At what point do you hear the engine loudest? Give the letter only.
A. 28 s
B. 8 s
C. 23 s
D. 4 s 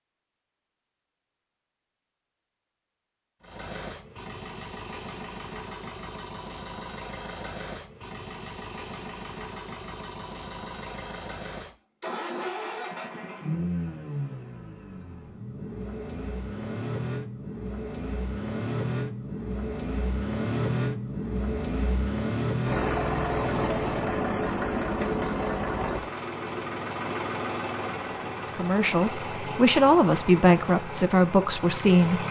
C.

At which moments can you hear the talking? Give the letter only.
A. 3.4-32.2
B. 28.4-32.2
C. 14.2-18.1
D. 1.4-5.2
B.